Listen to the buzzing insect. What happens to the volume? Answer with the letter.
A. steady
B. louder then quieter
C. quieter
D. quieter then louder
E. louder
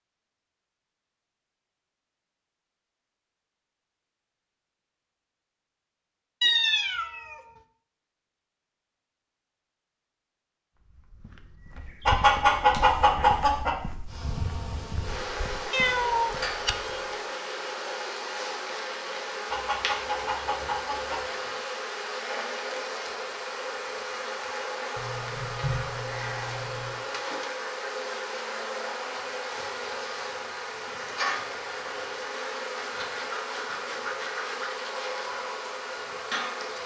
A.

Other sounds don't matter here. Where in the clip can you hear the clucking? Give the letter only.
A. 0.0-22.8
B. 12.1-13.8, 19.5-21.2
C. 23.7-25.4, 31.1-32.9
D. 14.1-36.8
B.